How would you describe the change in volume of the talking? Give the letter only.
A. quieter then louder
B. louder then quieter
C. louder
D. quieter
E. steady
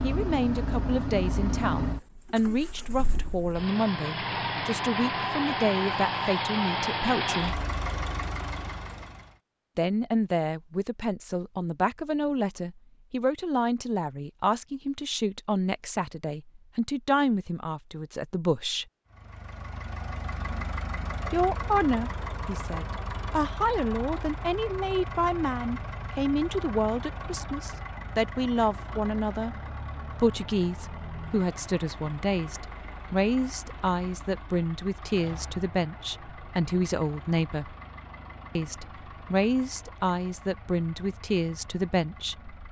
E.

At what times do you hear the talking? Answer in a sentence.
The talking can be heard from 0.0 to 7.6 s, from 9.8 to 18.9 s, from 21.3 to 29.6 s, from 30.2 to 37.8 s and from 38.5 to 42.6 s.